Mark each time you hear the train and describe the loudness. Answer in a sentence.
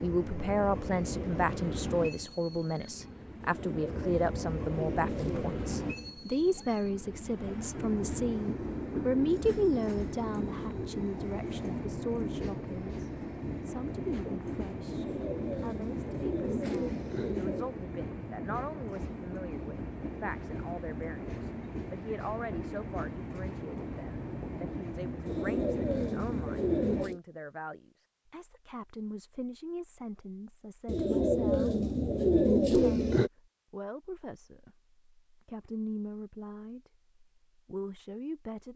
You can hear the train from 0.0 to 27.1 s, at a steady volume.